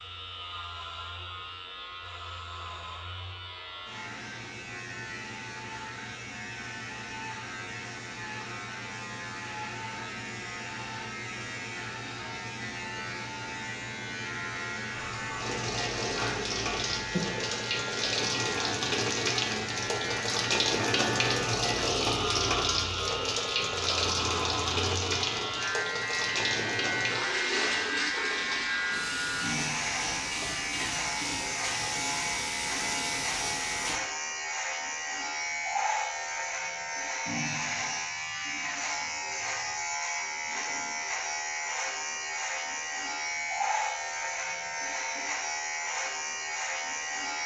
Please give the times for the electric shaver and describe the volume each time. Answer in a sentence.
You can hear the electric shaver from 0.0 to 47.4 s, getting louder.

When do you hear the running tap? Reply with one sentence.
The running tap can be heard from 14.9 to 34.0 s.